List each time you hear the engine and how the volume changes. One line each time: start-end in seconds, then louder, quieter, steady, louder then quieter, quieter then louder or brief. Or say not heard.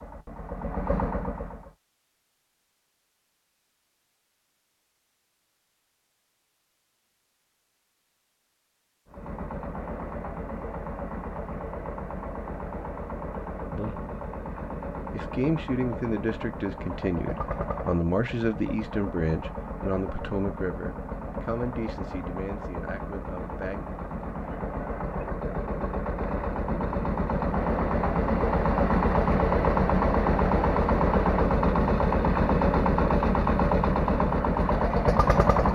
0.0-1.8 brief
9.1-35.6 louder.